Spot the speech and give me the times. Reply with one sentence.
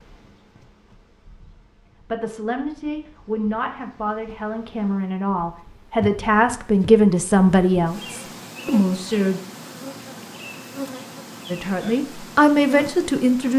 You can hear the speech from 2.0 to 9.4 s and from 11.5 to 13.5 s.